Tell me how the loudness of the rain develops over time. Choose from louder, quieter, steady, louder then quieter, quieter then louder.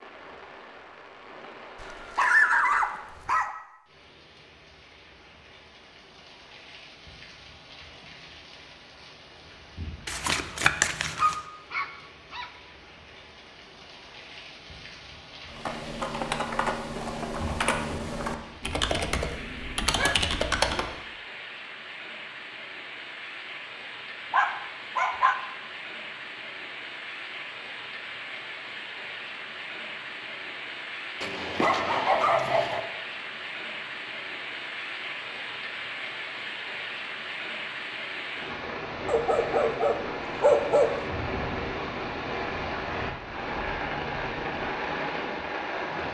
louder.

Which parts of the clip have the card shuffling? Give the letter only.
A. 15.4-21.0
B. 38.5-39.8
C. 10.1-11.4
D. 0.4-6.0
C.